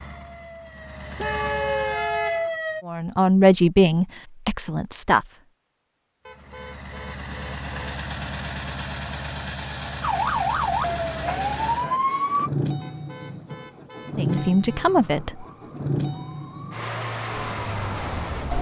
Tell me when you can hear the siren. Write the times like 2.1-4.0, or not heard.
0.0-2.9, 10.0-12.5, 15.0-18.5.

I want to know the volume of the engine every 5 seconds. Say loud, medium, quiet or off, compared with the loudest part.
medium, loud, loud, loud.